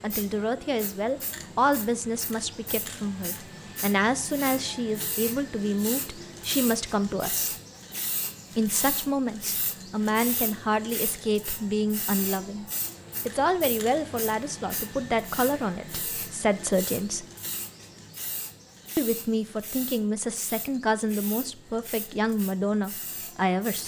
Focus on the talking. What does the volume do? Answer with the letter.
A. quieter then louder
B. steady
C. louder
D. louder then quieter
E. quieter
B.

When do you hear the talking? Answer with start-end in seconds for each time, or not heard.
0.0-7.5, 8.6-12.7, 13.2-17.2, 18.9-23.8.